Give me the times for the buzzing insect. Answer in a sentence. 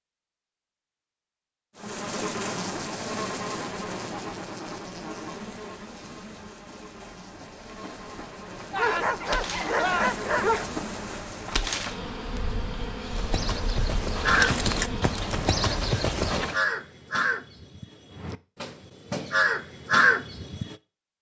You can hear the buzzing insect from 1.8 to 15.2 s.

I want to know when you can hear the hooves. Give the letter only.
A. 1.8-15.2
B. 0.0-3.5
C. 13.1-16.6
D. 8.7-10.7
C.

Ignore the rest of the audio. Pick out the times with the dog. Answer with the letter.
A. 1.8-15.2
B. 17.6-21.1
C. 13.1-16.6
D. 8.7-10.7
D.